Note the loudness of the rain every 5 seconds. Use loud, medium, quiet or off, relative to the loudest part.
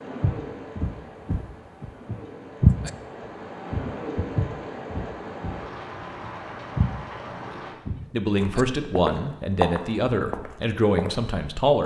loud, loud, off.